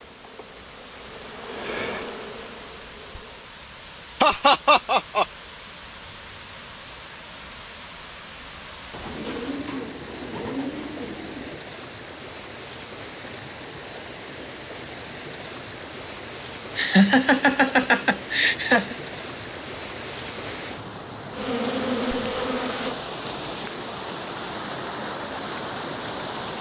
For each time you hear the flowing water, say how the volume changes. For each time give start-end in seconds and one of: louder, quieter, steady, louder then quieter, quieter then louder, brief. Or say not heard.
0.0-26.5 louder.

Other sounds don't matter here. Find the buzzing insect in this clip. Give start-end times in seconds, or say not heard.
0.0-3.5, 21.3-22.9.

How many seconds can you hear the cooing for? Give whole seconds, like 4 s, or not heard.
3 s.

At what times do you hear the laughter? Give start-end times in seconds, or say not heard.
4.2-5.2, 16.8-18.9.